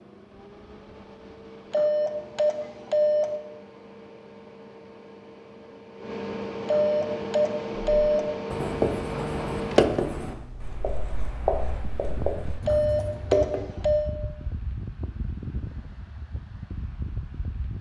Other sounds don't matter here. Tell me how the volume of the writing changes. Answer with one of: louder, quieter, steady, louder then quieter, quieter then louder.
louder then quieter.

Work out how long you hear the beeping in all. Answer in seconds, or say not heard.
5 s.